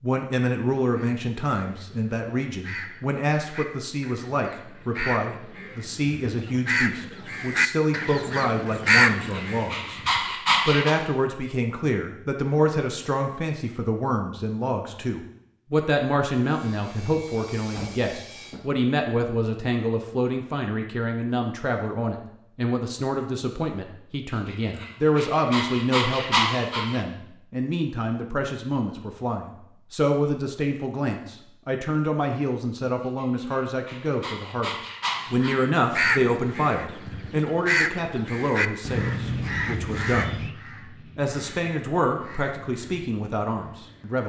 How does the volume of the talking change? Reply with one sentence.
The loudness of the talking stays about the same.